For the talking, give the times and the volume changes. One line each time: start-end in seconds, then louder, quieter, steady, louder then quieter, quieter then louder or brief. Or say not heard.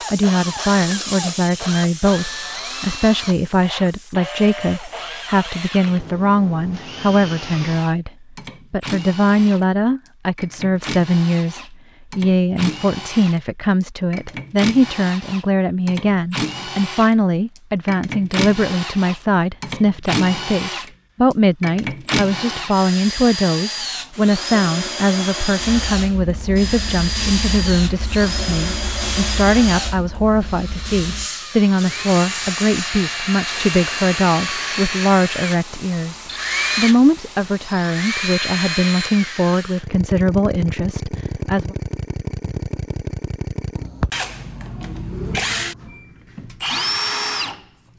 0.1-8.1 steady
8.7-41.8 steady.